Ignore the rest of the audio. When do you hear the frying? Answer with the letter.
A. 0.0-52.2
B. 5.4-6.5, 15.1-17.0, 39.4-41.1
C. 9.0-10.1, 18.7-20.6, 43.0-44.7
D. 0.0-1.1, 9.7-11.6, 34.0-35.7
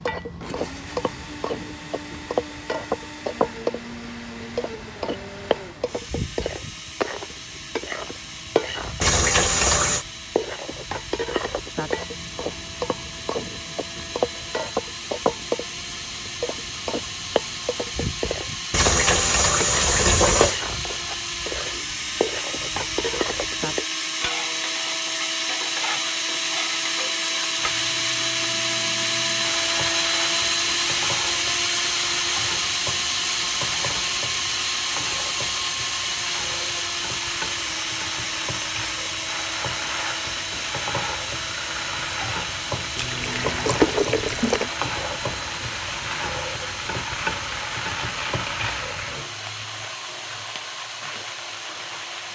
A.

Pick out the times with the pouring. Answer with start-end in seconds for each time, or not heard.
9.0-10.1, 18.7-20.6, 43.0-44.7.